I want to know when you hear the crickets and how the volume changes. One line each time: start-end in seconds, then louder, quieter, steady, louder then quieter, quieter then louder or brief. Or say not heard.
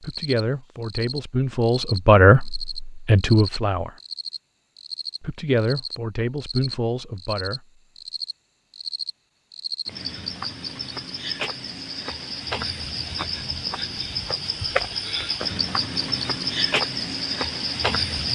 0.0-18.3 louder.